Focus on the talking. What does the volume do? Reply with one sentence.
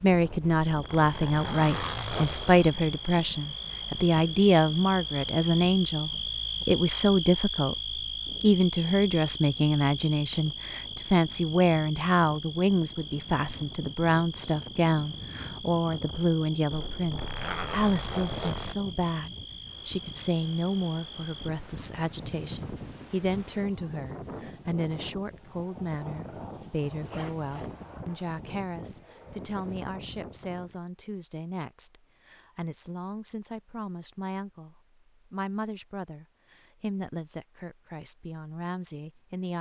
The loudness of the talking goes down.